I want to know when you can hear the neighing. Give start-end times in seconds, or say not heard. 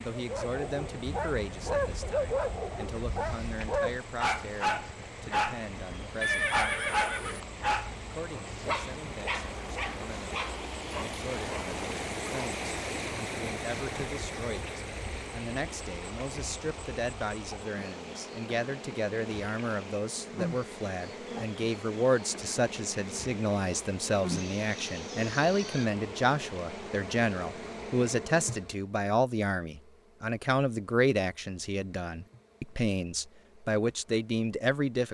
6.2-7.4, 24.3-25.9.